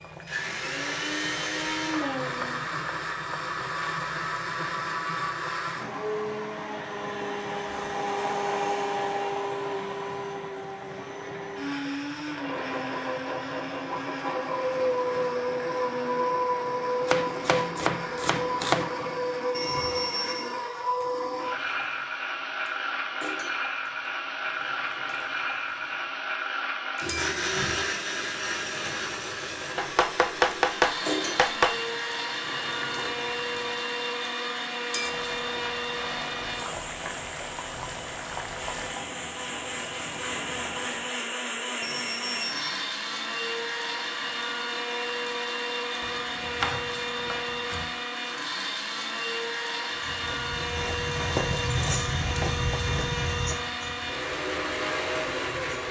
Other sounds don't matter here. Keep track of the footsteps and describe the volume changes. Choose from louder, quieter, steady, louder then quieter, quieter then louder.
louder then quieter.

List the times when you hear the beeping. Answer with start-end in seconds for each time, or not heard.
19.5-20.6, 41.8-42.9.